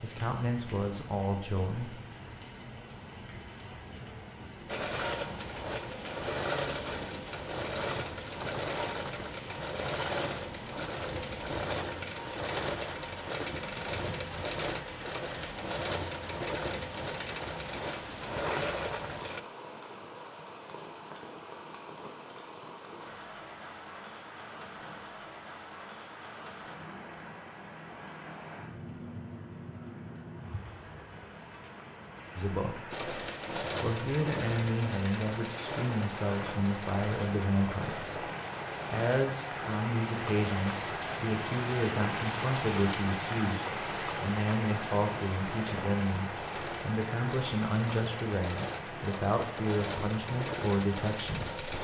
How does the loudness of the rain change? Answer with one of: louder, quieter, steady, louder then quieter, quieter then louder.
louder.